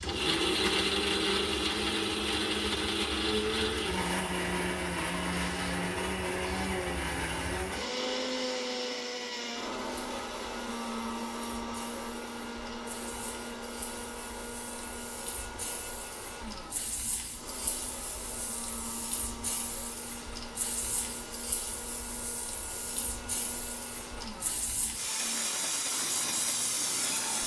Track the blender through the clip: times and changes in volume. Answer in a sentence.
You can hear the blender from 0.0 to 27.4 s, getting quieter.